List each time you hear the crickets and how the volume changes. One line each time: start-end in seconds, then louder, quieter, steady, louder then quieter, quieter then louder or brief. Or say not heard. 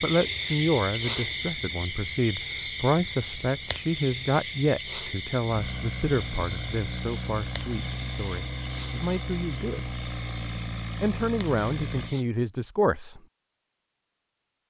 0.0-12.2 quieter.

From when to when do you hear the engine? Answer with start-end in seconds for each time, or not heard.
0.2-12.2.